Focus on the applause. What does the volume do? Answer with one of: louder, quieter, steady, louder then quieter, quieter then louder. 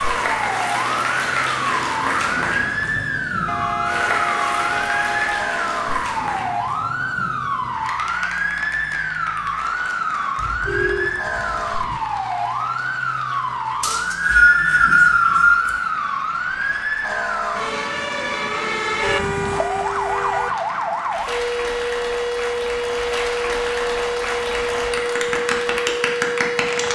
quieter then louder.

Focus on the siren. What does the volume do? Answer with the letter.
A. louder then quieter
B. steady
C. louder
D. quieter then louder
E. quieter
B.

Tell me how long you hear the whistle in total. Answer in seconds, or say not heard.
2 s.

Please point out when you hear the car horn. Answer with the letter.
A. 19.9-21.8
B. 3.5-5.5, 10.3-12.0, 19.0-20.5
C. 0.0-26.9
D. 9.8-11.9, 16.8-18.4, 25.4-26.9
B.